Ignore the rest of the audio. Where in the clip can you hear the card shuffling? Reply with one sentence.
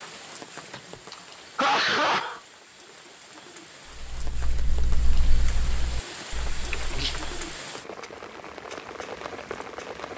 The card shuffling can't be heard in this clip.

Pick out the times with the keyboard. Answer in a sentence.
You can hear the keyboard from 3.9 to 7.4 s.